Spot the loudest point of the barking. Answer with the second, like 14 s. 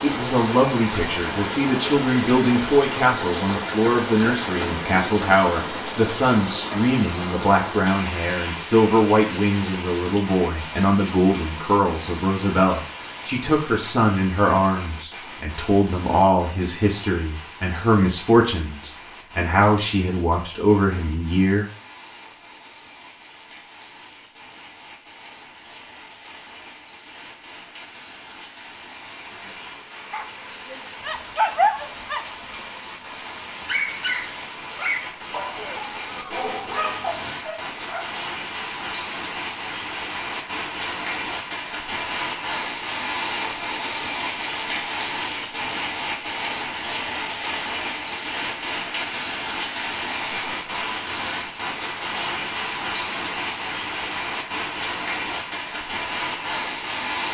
32 s.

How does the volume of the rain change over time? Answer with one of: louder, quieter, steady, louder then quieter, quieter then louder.
quieter then louder.